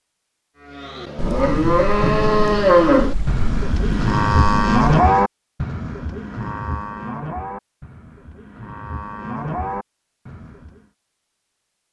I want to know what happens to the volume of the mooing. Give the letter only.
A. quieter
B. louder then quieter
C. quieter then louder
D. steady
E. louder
A.